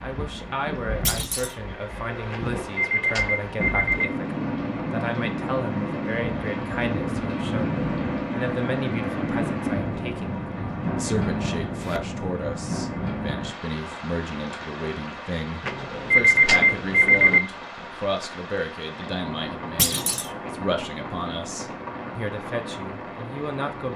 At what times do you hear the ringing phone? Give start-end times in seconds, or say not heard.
2.3-4.0, 15.7-17.4.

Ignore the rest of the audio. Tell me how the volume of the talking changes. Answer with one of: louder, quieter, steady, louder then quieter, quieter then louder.
steady.